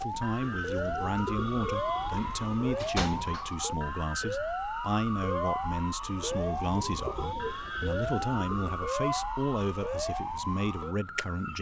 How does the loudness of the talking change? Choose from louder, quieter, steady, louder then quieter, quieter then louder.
steady.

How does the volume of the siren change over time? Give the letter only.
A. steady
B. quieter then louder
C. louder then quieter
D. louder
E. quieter
A.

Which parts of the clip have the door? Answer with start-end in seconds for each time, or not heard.
2.1-3.5.